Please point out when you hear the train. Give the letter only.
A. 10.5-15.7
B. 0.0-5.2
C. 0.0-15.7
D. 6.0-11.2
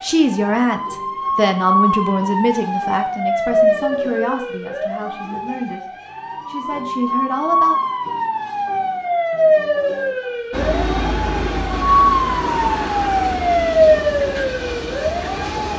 A.